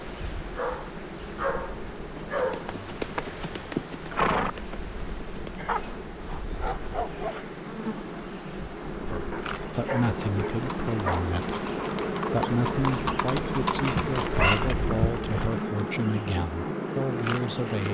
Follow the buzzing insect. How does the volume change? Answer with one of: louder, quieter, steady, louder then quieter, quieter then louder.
louder.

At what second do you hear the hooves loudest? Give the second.
4 s.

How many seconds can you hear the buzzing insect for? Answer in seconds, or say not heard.
18 s.